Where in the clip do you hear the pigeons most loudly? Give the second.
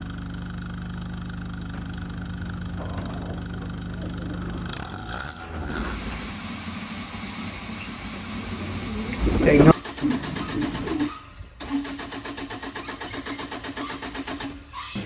10 s.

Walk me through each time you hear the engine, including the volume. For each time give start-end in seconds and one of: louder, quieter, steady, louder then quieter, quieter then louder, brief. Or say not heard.
0.0-15.0 steady.